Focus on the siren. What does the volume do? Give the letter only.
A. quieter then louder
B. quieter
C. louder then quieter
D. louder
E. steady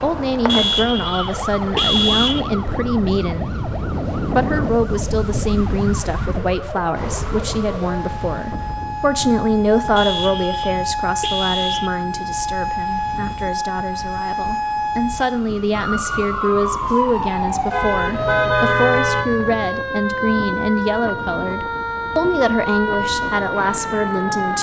D.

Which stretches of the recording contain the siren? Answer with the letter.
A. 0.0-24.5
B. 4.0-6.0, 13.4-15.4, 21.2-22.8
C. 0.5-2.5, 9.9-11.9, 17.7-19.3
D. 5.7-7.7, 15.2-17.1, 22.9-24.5
A.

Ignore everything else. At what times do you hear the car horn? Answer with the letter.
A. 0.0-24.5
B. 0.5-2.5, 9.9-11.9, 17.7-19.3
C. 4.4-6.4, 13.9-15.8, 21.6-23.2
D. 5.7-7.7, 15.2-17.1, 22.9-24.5
B.